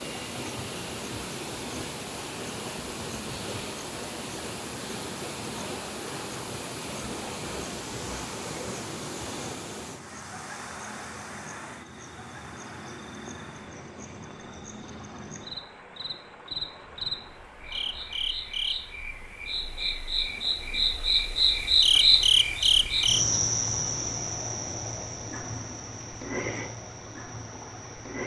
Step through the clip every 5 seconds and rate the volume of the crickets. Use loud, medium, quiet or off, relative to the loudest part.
quiet, quiet, quiet, medium, loud, quiet.